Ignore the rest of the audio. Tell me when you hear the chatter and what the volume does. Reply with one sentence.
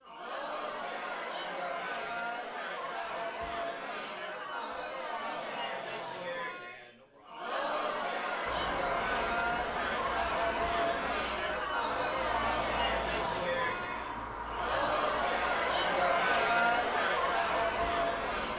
The chatter can be heard from 0.0 to 18.5 s, getting louder.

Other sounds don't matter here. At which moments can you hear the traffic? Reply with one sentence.
You can hear the traffic from 8.4 to 18.5 s.